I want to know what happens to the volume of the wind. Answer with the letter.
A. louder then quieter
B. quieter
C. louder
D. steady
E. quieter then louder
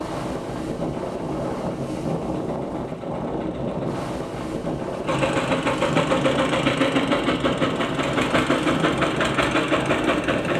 D.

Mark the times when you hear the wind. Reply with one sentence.
You can hear the wind from 0.0 to 10.5 s.